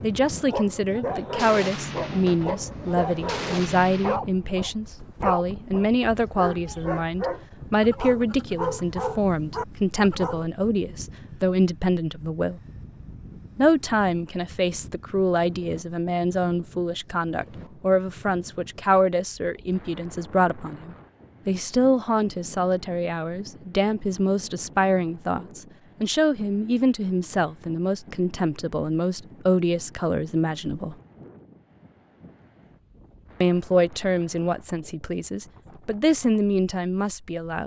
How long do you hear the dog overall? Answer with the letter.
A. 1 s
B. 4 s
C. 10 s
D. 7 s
C.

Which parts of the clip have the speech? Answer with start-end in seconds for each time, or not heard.
0.0-12.6, 13.6-30.9, 33.4-37.6.